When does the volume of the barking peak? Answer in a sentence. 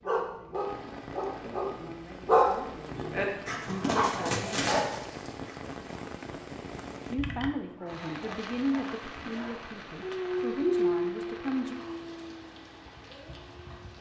The volume of the barking peaks at 2 seconds.